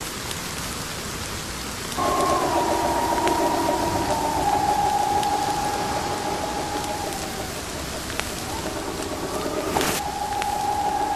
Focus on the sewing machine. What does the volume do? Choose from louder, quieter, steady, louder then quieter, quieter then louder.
quieter then louder.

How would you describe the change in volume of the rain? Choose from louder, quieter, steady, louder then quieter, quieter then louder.
steady.